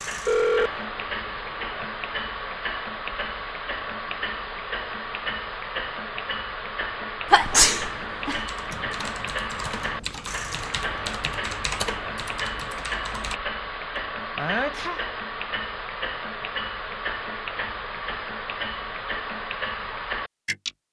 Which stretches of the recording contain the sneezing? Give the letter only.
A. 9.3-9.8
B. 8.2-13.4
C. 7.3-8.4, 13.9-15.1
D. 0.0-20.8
C.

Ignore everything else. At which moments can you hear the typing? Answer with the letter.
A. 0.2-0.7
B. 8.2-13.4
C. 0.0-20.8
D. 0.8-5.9
B.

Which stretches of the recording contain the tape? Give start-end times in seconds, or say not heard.
not heard.